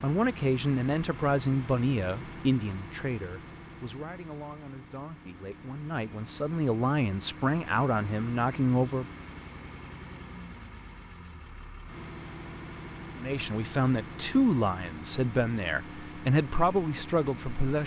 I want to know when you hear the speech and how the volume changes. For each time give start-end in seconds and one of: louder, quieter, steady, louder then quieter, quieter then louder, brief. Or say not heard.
0.0-9.1 quieter then louder
13.2-17.8 steady.